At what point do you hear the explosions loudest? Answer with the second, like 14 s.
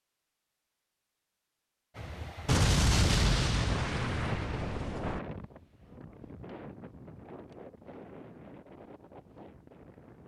3 s.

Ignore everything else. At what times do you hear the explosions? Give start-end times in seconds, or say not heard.
2.5-5.2.